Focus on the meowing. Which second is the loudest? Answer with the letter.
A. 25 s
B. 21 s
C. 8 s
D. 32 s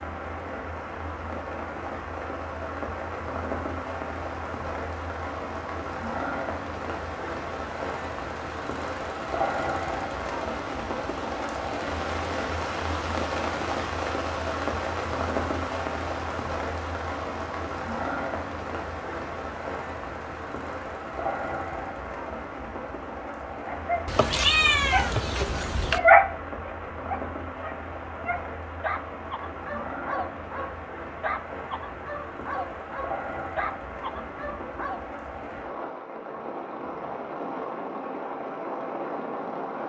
A.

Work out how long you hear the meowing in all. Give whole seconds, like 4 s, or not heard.
2 s.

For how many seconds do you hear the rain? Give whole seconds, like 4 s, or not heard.
40 s.